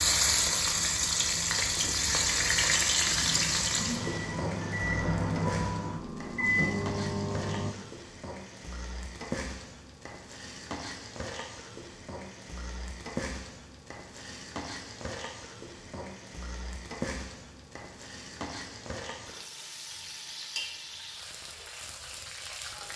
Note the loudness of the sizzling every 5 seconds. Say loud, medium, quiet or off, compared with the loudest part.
loud, quiet, quiet, quiet, quiet.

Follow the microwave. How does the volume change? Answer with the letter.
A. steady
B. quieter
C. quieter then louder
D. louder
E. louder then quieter
D.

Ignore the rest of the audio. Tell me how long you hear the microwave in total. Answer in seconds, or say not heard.
8 s.